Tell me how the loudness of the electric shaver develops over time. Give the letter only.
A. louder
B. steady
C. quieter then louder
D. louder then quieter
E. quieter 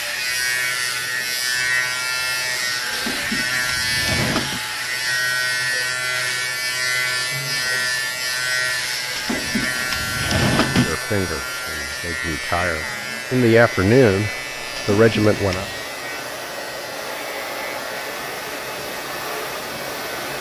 E.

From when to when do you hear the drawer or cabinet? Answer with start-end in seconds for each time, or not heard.
2.9-4.6, 9.2-10.9, 14.8-15.8.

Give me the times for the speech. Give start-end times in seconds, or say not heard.
10.7-15.7.